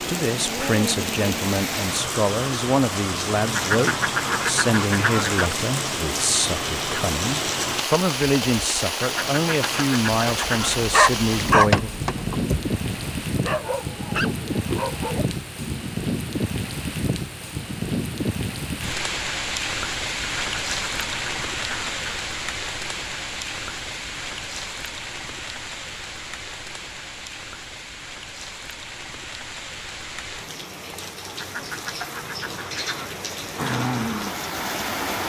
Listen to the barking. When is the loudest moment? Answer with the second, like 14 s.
12 s.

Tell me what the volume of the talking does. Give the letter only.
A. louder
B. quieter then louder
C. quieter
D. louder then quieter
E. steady
E.